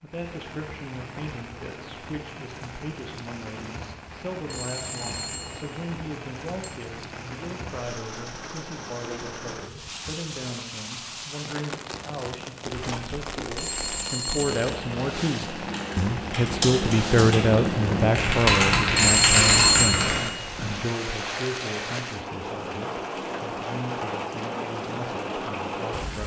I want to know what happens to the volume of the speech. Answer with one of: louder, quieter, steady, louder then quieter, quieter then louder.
louder then quieter.